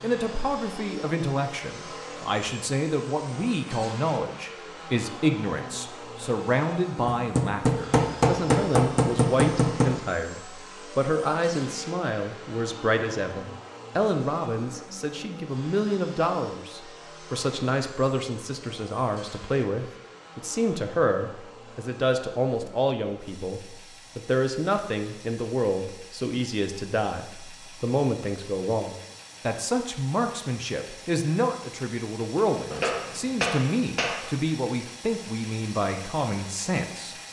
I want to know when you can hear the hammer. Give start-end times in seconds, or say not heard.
7.0-9.9, 32.7-34.2.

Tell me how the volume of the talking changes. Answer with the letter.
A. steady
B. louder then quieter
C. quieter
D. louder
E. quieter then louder
A.